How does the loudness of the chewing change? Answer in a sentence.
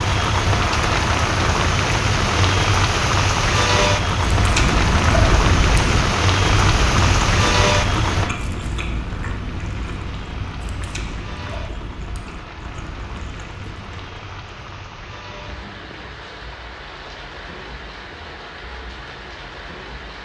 The volume of the chewing goes down.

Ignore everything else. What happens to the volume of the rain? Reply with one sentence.
The volume of the rain goes down.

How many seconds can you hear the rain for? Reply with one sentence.
You can hear the rain for 20 seconds altogether.